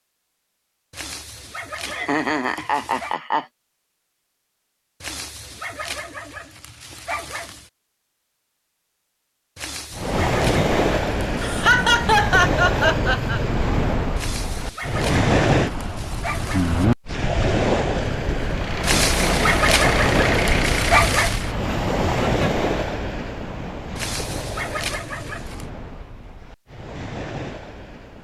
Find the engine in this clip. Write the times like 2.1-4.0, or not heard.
18.4-21.5.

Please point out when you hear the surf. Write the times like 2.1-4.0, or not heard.
9.9-28.2.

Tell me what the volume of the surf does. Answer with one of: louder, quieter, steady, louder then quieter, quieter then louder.
quieter.